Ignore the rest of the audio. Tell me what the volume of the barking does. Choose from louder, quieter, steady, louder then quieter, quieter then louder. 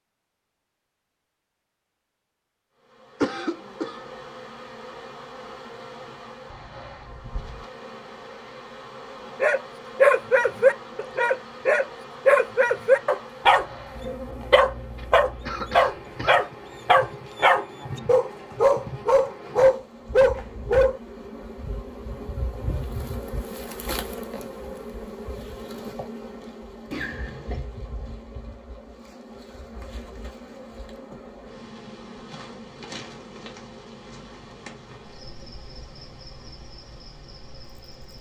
steady.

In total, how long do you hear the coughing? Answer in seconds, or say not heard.
3 s.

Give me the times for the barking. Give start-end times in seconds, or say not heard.
9.4-21.0.